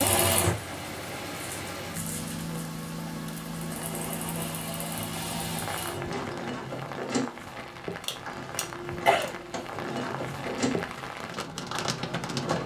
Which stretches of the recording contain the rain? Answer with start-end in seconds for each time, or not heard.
0.0-12.6.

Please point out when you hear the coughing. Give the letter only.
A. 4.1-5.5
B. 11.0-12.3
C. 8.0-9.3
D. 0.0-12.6
C.